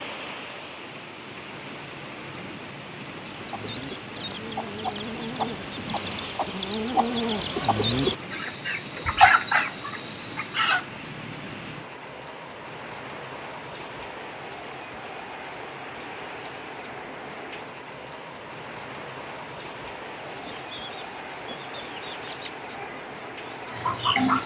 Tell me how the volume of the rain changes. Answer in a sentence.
The loudness of the rain stays about the same.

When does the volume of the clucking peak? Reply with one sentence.
The loudest moment of the clucking is at 9 seconds.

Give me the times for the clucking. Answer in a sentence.
The clucking can be heard from 3.1 to 10.8 s and from 20.2 to 24.4 s.